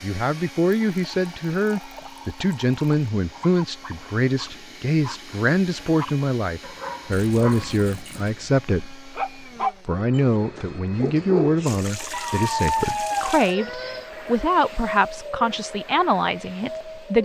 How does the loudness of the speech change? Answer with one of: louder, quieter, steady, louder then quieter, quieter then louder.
steady.